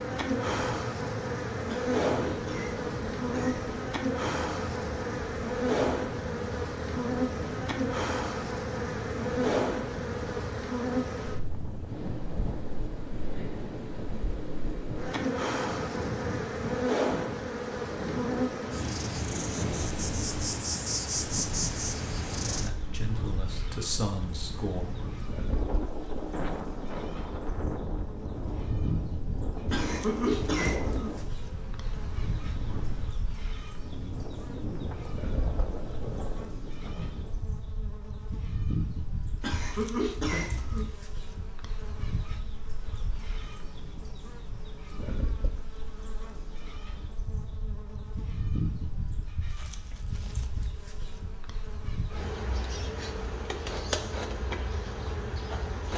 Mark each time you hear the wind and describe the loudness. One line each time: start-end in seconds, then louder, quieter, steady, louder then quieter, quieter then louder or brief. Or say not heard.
0.0-37.5 steady.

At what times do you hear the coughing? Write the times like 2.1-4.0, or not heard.
1.6-3.6, 29.7-31.1, 39.4-40.9.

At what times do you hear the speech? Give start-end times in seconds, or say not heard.
22.6-24.9.